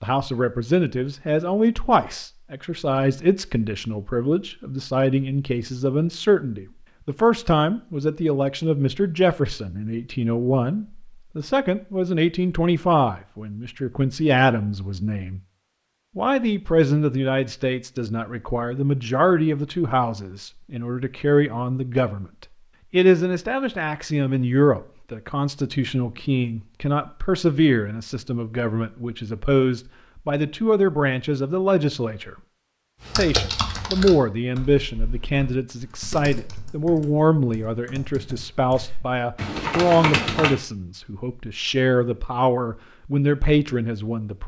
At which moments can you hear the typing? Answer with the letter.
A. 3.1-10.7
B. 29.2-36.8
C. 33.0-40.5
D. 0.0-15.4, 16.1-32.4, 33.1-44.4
C.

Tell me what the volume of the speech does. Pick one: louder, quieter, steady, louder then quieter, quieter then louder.
steady.